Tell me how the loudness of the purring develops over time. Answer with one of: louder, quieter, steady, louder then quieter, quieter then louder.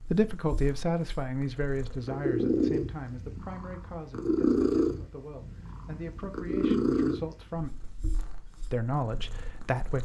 louder then quieter.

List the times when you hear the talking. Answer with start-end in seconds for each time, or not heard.
0.1-7.8, 8.7-9.9.